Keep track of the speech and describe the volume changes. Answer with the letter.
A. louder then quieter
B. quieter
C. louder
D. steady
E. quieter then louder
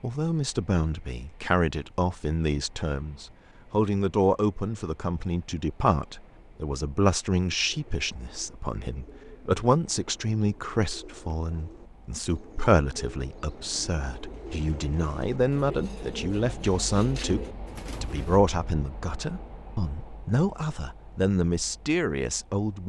D.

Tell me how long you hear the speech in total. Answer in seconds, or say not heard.
22 s.